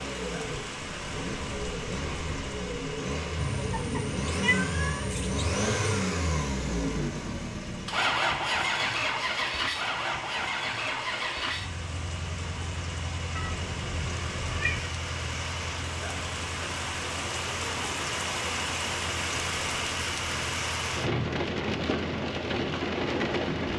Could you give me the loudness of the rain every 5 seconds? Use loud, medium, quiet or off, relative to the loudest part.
medium, quiet, medium, loud, loud.